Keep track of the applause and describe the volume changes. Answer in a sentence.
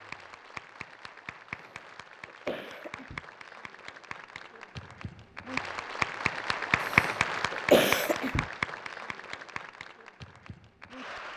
The loudness of the applause goes up, then down.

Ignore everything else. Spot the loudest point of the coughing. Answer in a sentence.
The volume of the coughing peaks at 8 seconds.